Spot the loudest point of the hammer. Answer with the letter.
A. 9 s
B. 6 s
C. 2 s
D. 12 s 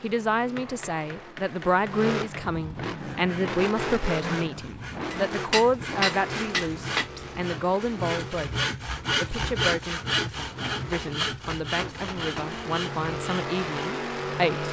B.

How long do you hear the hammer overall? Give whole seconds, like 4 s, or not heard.
6 s.